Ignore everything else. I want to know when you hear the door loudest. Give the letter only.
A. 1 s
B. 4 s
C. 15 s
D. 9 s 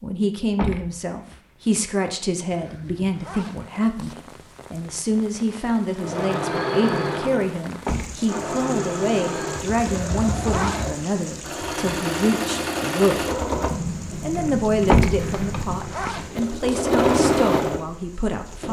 C.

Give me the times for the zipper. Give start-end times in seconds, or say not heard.
2.5-4.2, 9.8-10.9, 15.2-16.9.